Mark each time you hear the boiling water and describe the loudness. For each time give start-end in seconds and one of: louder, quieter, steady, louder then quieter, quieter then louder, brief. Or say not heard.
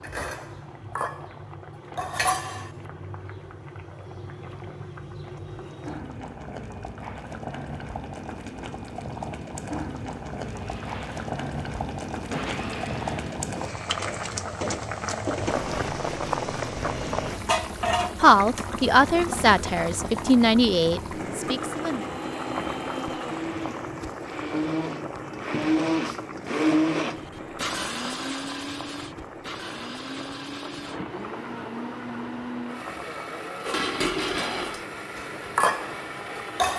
0.0-36.7 louder then quieter.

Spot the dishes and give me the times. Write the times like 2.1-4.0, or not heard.
0.0-2.7, 33.6-36.7.